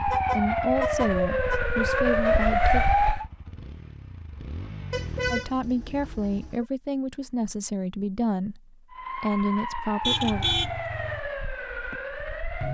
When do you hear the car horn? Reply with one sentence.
You can hear the car horn from 0.1 to 1.6 s, from 4.9 to 6.7 s and from 10.0 to 11.2 s.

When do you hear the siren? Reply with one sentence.
The siren can be heard from 0.0 to 3.2 s and from 8.9 to 12.6 s.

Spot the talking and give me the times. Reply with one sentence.
The talking can be heard from 0.1 to 2.9 s and from 5.3 to 10.4 s.